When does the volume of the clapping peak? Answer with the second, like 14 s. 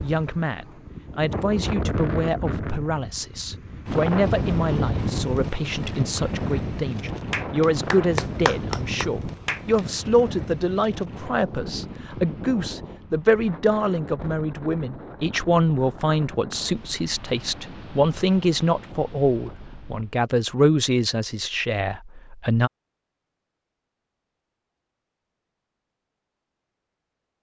8 s.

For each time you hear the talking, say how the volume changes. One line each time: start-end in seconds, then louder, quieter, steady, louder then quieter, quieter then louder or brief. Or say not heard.
0.0-22.7 steady.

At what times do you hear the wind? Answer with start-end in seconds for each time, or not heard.
0.0-20.2.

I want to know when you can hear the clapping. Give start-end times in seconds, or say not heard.
7.2-9.8.